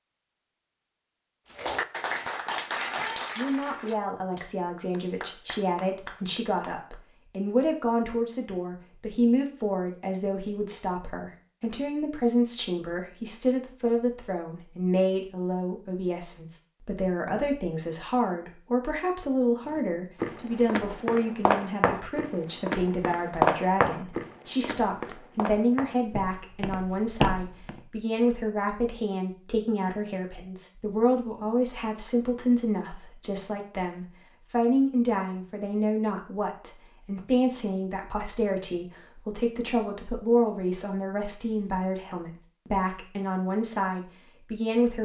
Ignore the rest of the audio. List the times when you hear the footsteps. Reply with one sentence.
The footsteps can be heard from 19.7 to 27.8 s.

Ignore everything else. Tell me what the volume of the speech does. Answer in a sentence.
The loudness of the speech stays about the same.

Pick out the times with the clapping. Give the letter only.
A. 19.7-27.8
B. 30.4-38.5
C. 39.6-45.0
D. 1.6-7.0
D.